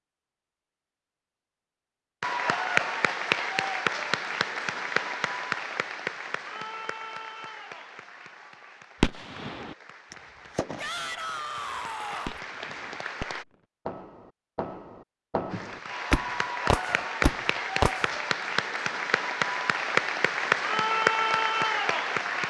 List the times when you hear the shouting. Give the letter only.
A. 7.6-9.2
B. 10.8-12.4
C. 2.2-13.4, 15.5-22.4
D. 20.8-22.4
B.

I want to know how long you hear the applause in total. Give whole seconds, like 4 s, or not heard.
18 s.